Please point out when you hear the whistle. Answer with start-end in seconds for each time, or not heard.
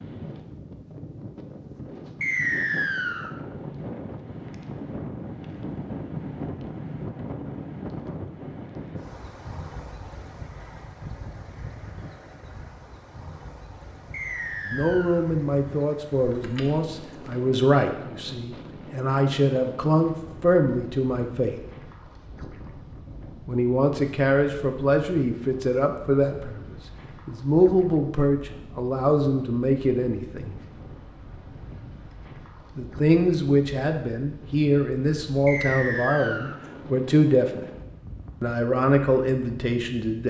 2.2-3.3, 14.1-15.2, 35.5-36.6.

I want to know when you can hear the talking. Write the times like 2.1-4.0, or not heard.
14.7-21.6, 23.4-30.6, 32.8-37.6, 38.4-40.2.